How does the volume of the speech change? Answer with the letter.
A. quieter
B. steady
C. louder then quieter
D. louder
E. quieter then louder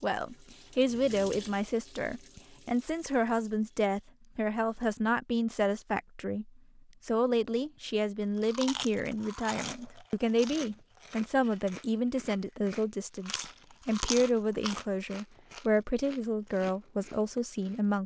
B.